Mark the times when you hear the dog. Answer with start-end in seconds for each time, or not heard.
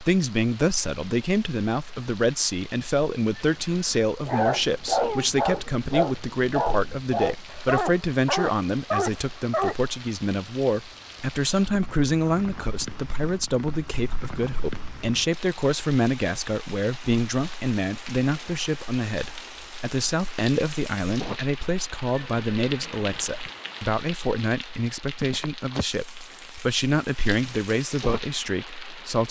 4.2-9.8.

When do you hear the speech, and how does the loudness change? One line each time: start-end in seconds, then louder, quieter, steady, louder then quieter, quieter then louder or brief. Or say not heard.
0.0-29.2 steady.